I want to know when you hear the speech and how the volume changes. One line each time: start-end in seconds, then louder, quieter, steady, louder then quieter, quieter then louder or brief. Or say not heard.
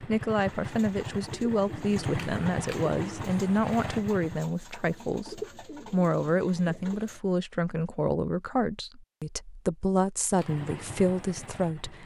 0.0-12.0 steady.